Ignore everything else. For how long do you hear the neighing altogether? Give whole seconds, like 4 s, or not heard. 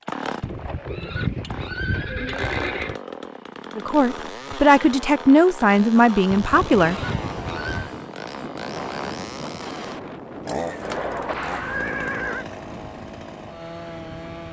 6 s.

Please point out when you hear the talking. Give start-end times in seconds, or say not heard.
3.8-7.0.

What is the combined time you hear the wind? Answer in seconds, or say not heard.
8 s.